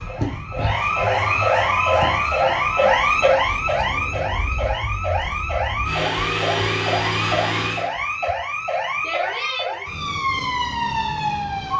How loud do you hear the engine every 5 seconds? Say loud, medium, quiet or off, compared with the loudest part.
quiet, loud, off.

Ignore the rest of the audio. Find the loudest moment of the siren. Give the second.
3 s.